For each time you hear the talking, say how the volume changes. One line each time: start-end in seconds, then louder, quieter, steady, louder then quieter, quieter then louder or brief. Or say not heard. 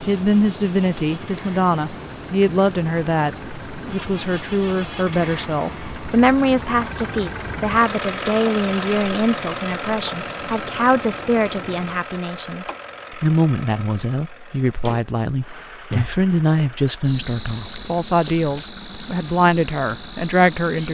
0.1-20.8 steady.